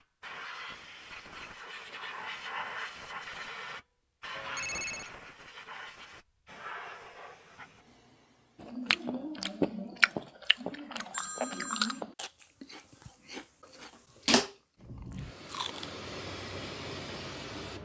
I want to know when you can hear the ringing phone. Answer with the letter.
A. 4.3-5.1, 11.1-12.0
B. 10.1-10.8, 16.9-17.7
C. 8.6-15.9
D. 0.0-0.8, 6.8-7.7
A.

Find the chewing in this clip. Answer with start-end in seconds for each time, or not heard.
8.6-15.9.